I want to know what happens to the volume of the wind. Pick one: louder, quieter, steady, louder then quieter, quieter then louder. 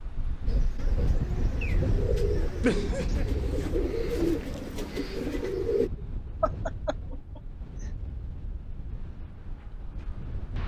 quieter.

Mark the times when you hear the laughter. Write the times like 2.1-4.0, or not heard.
2.6-3.2, 6.4-7.4.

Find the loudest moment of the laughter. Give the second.
3 s.